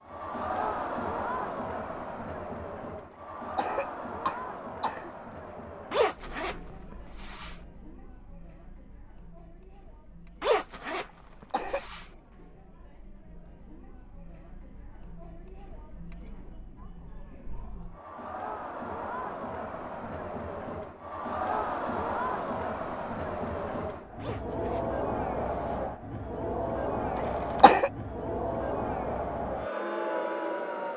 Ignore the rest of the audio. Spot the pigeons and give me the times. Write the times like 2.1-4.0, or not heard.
not heard.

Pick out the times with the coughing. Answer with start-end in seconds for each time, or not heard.
3.1-5.1, 11.1-11.8, 27.1-27.9.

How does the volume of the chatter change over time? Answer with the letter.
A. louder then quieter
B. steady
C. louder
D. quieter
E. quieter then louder
E.